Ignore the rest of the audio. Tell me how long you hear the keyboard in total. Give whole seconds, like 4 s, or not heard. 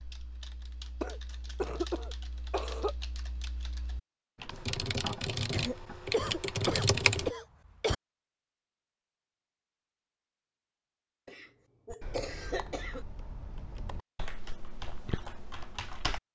12 s.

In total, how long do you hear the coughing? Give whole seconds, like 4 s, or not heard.
6 s.